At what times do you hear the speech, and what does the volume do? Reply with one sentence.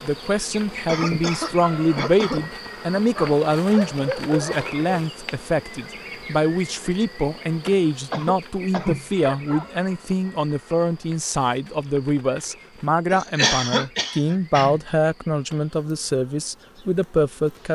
You can hear the speech from 0.0 to 17.6 s, at a steady volume.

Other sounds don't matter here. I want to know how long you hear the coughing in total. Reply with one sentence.
You can hear the coughing for 4 seconds altogether.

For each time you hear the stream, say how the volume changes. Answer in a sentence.
You can't hear the stream here.